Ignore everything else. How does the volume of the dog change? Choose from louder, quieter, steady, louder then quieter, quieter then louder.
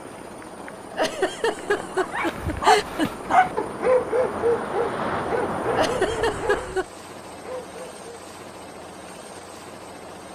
quieter.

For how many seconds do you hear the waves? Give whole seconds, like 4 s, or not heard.
7 s.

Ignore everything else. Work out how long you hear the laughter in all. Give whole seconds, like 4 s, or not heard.
4 s.